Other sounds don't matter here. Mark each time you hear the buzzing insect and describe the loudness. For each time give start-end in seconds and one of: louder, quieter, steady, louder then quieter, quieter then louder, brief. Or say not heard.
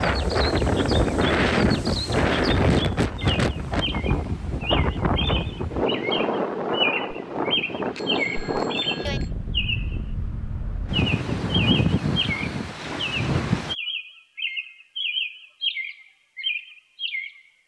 not heard.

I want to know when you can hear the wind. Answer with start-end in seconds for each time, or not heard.
0.0-13.8.